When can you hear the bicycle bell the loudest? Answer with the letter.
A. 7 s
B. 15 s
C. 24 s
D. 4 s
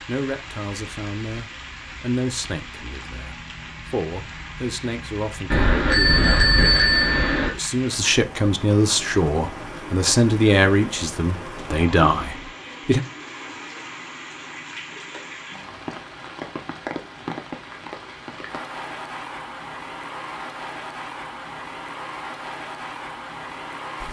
A.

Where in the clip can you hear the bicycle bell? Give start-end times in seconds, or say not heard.
5.5-7.5.